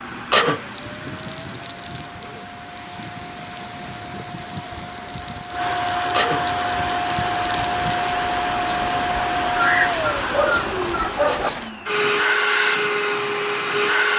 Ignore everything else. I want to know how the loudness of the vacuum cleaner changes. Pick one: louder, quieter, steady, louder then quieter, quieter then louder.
louder.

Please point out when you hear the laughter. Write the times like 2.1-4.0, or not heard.
not heard.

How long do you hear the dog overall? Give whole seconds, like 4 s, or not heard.
2 s.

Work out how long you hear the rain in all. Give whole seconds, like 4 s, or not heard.
12 s.